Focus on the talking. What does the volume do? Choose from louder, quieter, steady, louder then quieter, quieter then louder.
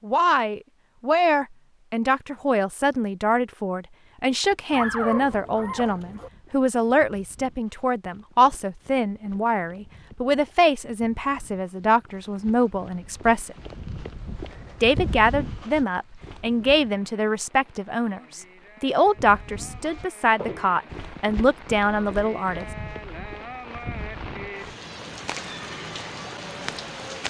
steady.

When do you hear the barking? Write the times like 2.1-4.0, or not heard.
4.7-6.3.